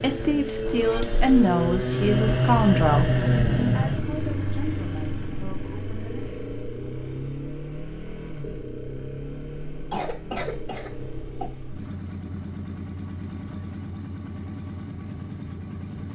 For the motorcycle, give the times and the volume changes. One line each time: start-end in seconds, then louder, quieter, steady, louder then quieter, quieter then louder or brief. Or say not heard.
0.0-16.0 quieter.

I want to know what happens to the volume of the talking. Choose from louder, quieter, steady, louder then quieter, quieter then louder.
quieter.